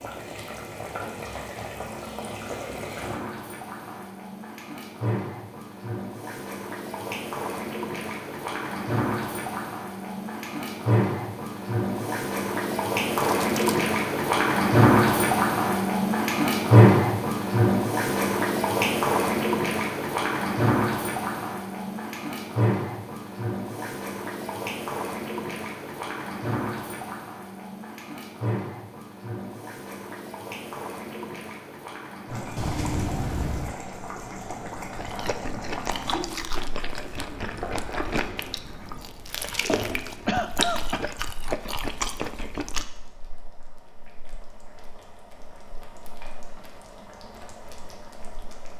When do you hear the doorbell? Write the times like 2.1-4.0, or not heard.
32.5-33.8.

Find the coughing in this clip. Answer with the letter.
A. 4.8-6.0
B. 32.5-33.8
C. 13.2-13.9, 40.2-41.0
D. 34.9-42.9
C.